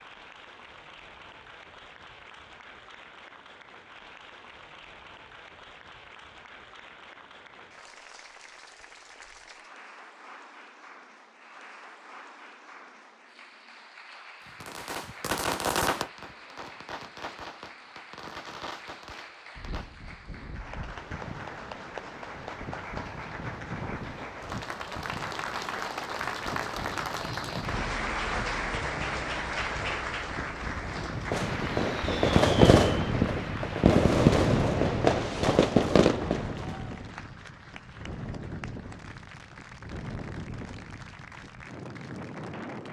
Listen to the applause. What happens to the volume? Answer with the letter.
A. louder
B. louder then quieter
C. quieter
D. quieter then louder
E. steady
B.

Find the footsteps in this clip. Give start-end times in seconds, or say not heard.
not heard.